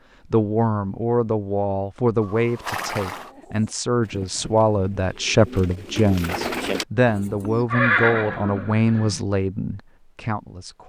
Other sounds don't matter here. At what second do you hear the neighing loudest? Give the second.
8 s.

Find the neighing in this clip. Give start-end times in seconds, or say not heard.
2.2-3.3, 7.7-9.2.